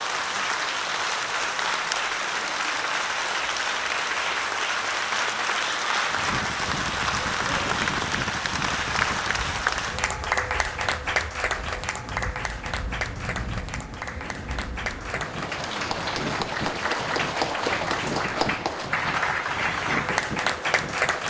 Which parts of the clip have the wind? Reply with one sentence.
The wind can be heard from 6.0 to 21.2 s.